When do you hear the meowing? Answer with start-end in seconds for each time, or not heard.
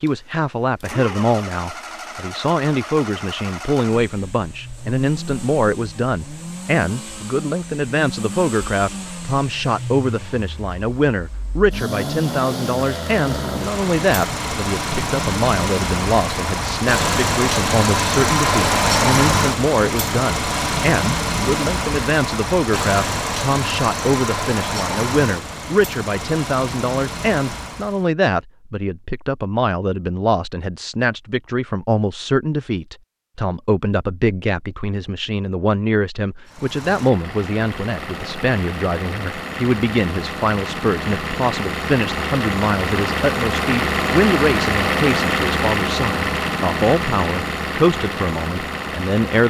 not heard.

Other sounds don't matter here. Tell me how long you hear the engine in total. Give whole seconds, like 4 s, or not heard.
41 s.